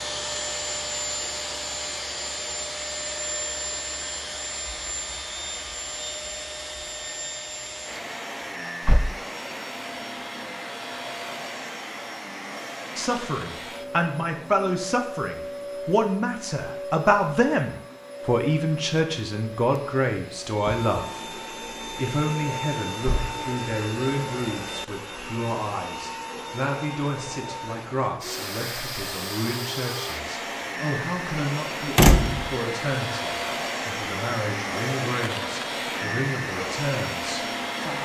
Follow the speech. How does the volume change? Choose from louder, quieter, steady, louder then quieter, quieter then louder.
quieter.